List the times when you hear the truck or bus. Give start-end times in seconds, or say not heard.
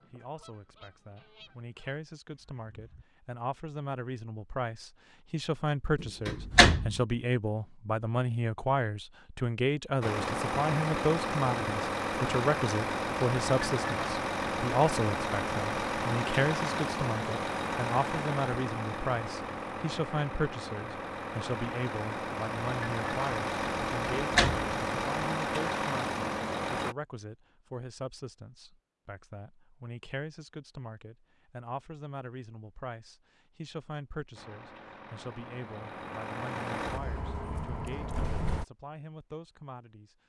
10.0-26.9, 34.4-38.6.